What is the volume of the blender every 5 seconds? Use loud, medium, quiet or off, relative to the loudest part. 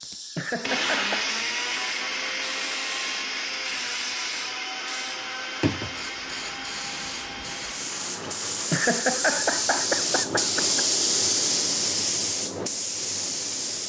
loud, medium, off.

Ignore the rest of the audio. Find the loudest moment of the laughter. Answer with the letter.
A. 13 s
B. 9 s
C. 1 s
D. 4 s
B.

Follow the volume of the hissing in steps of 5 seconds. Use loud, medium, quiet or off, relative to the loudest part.
quiet, medium, loud.